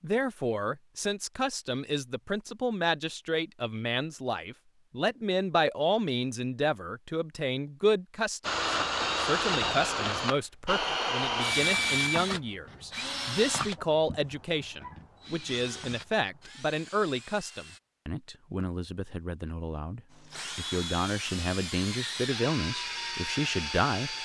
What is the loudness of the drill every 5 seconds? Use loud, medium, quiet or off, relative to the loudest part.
off, loud, loud, quiet, medium.